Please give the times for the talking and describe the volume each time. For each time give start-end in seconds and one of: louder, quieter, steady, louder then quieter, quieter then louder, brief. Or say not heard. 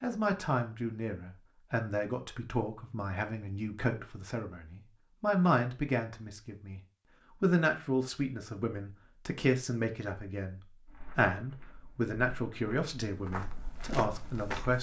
0.0-6.8 quieter then louder
7.4-14.7 steady.